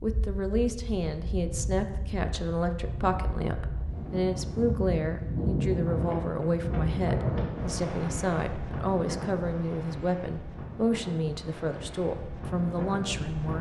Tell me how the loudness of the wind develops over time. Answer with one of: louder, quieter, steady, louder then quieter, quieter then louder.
louder then quieter.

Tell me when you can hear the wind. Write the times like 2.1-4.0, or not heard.
0.0-13.5.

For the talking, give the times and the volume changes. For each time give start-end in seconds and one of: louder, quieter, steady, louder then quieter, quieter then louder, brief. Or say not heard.
0.0-13.5 steady.